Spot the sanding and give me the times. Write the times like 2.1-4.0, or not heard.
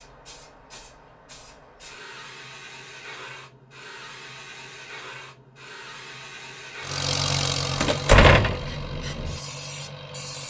not heard.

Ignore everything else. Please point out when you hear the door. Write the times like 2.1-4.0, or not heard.
7.8-8.7.